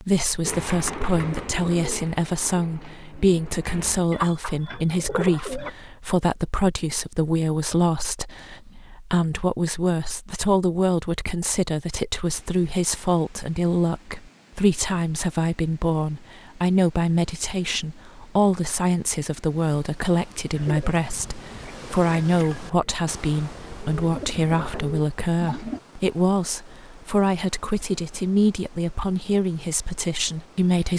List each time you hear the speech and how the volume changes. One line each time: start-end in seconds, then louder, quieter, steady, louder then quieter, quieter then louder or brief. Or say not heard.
0.0-30.9 steady.